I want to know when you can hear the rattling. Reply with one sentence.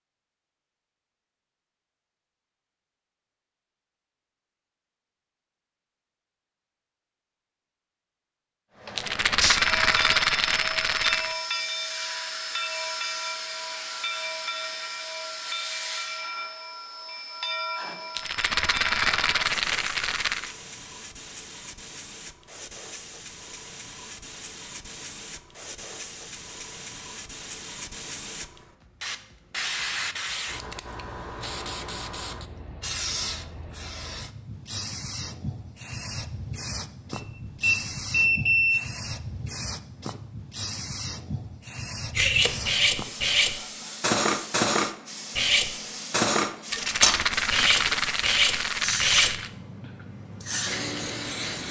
You can hear the rattling from 8.9 to 11.3 s, from 18.1 to 20.6 s and from 46.7 to 49.5 s.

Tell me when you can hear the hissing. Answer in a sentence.
The hissing can be heard from 8.8 to 51.6 s.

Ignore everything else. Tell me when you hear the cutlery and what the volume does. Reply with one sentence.
The cutlery can be heard from 42.1 to 49.4 s, at a steady volume.